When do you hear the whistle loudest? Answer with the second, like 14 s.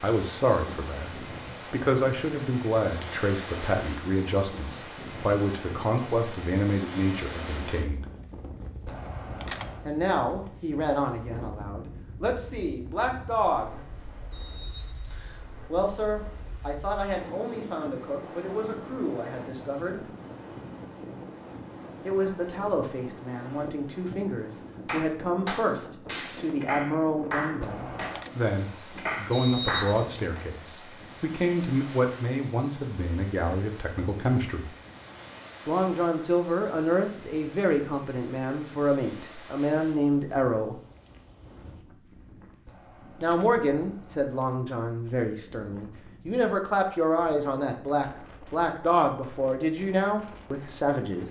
30 s.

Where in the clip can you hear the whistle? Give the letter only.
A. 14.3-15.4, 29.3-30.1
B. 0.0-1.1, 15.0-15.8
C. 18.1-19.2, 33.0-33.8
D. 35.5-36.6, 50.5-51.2
A.